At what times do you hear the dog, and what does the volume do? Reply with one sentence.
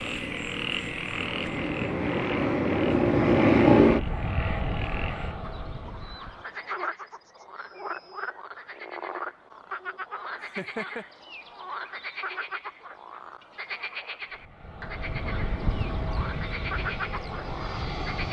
The dog can't be heard in this clip.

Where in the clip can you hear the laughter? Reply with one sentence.
The laughter can be heard from 10.3 to 11.1 s.